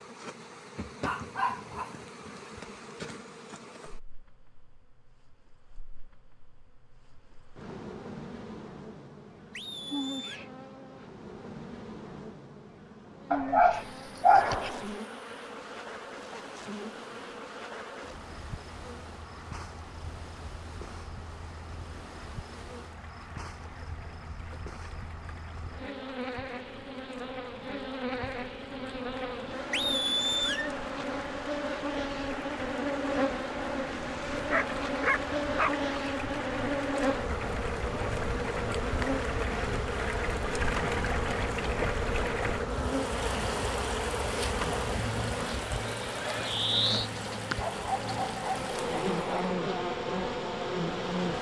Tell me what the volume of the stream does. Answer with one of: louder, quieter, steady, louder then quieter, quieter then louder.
louder.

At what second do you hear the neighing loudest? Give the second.
30 s.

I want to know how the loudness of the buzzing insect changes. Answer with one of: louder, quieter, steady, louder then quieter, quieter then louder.
louder.